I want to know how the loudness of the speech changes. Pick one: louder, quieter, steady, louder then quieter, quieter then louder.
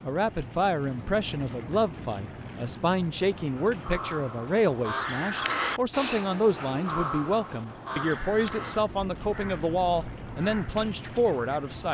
steady.